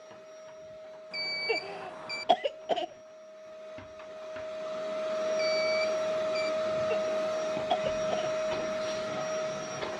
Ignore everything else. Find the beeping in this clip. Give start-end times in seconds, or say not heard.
1.1-2.2, 5.3-6.5.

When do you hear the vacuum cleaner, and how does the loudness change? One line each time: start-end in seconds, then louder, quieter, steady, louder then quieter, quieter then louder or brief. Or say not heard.
0.0-9.9 louder.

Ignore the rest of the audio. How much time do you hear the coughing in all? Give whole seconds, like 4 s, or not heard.
3 s.